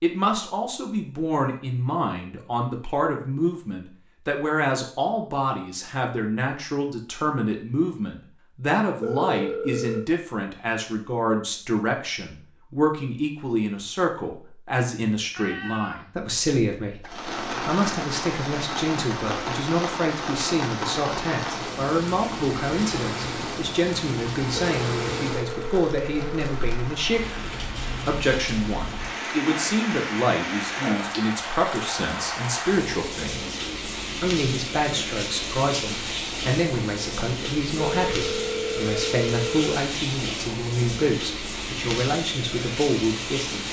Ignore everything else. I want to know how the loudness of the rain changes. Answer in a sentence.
The loudness of the rain stays about the same.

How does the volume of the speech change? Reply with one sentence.
The volume of the speech stays about the same.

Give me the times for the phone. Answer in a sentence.
The phone can be heard from 9.0 to 10.1 s, from 24.7 to 26.6 s and from 37.8 to 39.8 s.